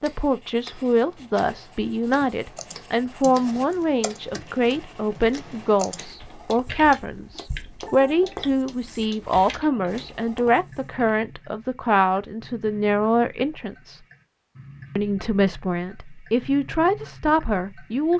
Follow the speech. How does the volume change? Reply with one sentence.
The volume of the speech stays about the same.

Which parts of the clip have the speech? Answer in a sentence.
The speech can be heard from 0.0 to 14.0 s and from 14.9 to 18.1 s.